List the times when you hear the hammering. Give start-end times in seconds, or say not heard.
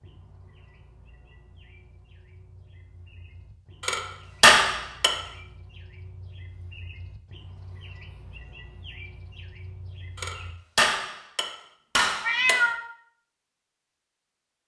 3.8-5.2, 10.2-12.7.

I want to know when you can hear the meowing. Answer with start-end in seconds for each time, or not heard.
12.2-12.9.